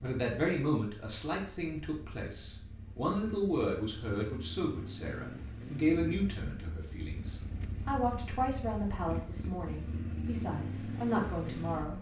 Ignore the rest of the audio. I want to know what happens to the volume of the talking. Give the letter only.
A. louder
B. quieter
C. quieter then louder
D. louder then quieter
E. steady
E.